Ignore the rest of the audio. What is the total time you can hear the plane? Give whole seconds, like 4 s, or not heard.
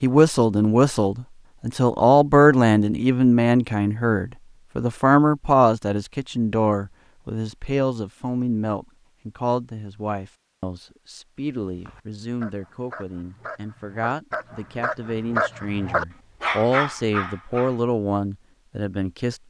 not heard.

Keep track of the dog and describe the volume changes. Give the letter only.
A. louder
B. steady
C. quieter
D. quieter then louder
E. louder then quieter
A.